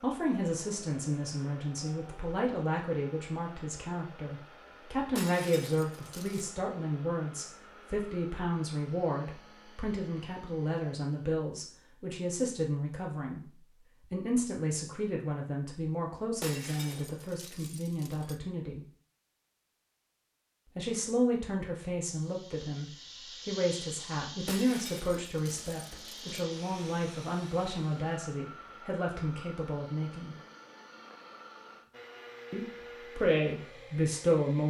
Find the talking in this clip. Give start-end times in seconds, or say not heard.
0.0-18.9, 20.8-30.4, 32.5-34.6.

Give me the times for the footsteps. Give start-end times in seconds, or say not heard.
not heard.